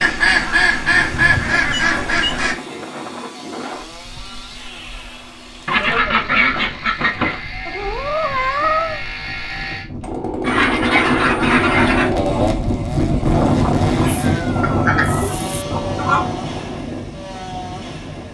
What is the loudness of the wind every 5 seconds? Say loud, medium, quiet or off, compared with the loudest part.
quiet, quiet, loud, medium.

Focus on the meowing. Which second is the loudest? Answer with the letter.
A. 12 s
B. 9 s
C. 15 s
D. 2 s
B.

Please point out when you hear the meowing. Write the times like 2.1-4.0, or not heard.
1.0-2.4, 7.7-9.0, 14.0-15.7.